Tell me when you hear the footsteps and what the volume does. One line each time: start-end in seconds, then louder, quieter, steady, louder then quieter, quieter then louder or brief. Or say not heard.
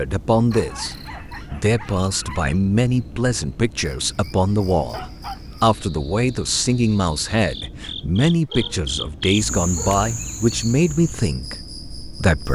not heard.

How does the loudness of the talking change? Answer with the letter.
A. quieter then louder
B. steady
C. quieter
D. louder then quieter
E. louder
B.